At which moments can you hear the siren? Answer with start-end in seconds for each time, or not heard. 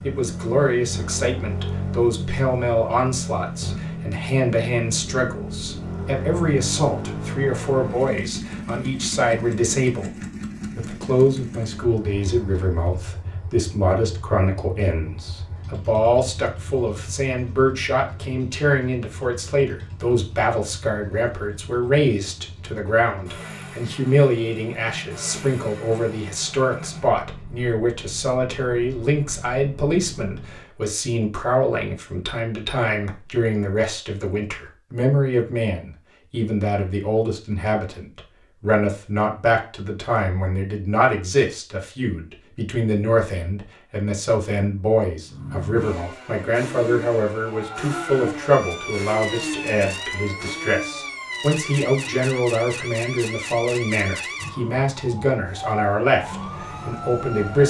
47.5-57.6.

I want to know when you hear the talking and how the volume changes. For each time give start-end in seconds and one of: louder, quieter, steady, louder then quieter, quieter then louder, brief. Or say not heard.
0.0-57.6 steady.